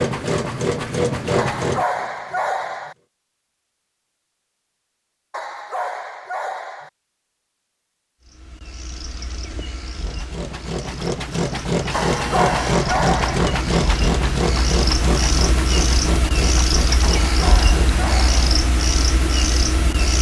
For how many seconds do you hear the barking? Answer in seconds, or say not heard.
6 s.